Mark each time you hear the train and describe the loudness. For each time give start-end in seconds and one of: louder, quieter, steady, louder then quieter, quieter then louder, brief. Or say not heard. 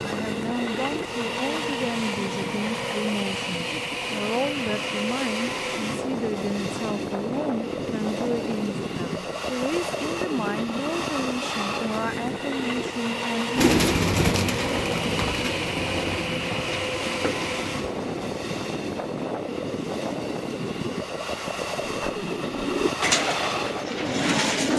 0.0-24.7 steady.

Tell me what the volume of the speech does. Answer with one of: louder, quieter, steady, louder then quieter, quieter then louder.
steady.